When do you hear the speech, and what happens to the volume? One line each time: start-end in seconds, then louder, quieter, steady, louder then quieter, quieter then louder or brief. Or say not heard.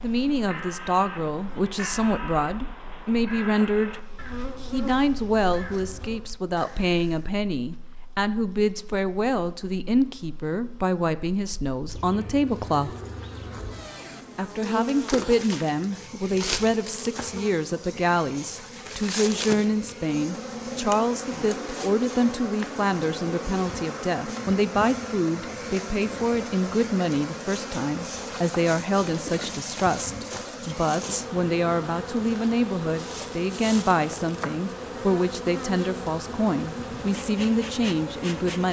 0.0-12.9 steady
14.3-38.6 steady.